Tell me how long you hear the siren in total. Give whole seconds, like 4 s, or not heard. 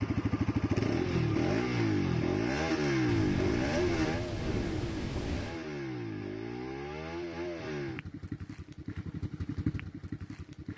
not heard.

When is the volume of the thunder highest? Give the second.
5 s.